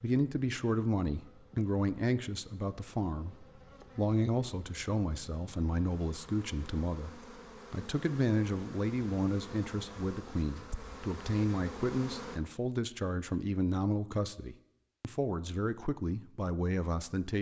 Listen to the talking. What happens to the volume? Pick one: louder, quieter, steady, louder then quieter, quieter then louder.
steady.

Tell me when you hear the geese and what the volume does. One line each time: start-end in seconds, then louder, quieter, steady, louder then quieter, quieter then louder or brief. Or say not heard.
not heard.